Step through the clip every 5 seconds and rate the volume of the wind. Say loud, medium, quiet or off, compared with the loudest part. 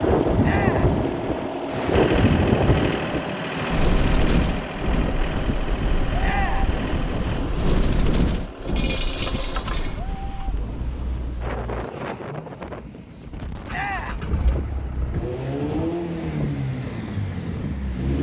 loud, medium, quiet, quiet.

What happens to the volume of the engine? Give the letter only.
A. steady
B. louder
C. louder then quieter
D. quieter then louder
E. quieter
D.